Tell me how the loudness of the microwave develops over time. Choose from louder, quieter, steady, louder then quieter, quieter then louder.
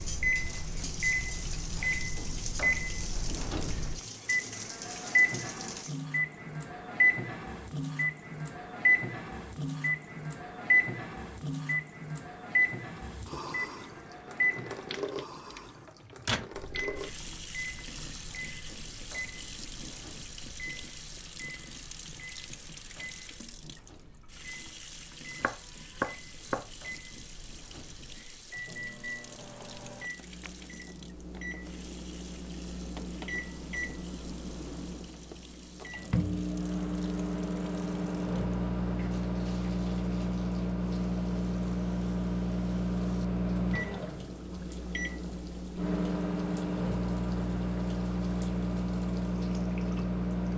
quieter then louder.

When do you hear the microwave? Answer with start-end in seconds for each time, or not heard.
0.0-50.5.